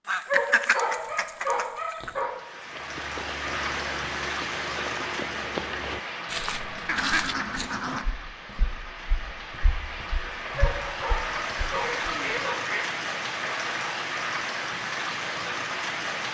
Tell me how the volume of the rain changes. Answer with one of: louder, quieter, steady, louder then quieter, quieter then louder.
quieter then louder.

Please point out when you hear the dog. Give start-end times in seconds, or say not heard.
0.2-2.3, 10.6-12.6.